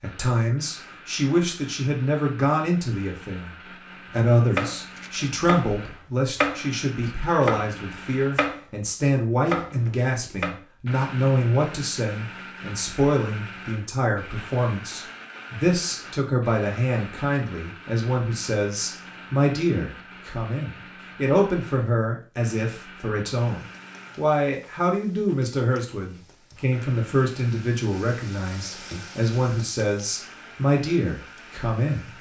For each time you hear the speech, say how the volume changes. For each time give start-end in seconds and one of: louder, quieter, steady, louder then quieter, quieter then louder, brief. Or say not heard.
0.0-32.1 steady.